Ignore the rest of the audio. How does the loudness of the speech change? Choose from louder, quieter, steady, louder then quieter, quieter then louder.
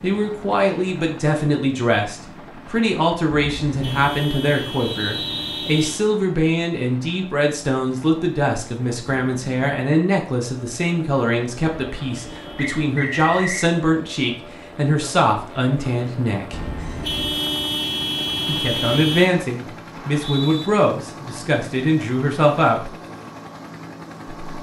steady.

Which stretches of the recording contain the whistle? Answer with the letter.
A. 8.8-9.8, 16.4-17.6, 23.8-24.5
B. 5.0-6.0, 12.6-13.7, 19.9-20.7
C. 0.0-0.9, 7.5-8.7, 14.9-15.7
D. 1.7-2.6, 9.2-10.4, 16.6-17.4
B.